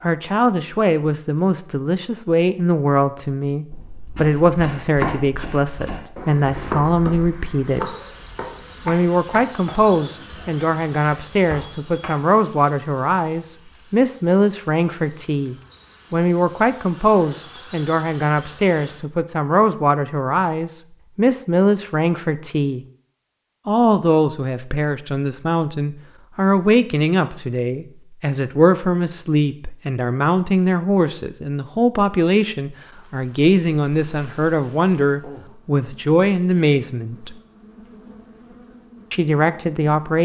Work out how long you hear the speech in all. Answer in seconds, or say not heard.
37 s.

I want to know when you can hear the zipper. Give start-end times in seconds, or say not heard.
not heard.